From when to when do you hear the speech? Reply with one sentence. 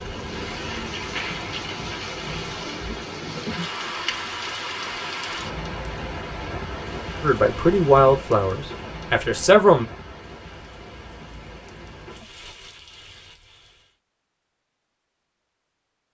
The speech can be heard from 7.2 to 9.8 s.